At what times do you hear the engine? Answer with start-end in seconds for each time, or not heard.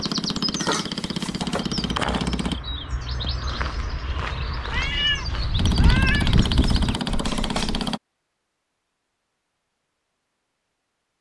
0.0-2.6, 5.5-8.0.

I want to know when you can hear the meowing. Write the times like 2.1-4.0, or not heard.
4.7-6.3.